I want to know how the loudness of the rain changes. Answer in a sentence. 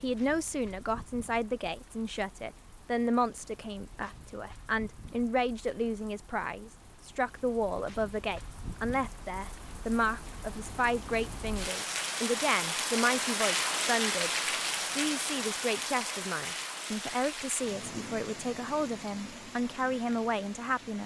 The loudness of the rain goes up, then down.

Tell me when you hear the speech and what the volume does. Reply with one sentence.
The speech can be heard from 0.0 to 21.0 s, at a steady volume.